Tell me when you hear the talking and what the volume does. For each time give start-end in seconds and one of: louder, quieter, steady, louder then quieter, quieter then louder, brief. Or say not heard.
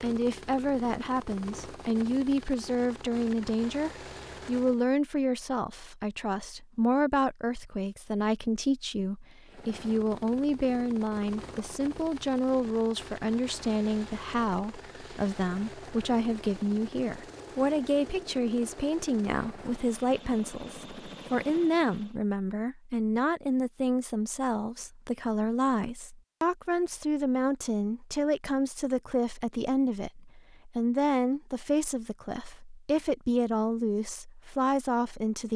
0.0-35.5 steady.